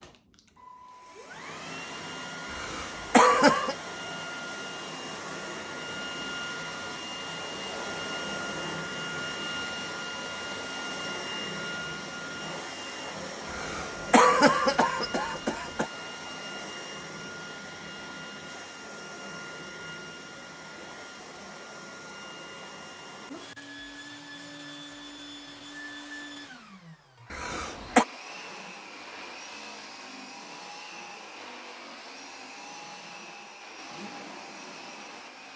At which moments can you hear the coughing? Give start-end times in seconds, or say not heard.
2.5-3.8, 13.5-15.8, 27.3-28.1.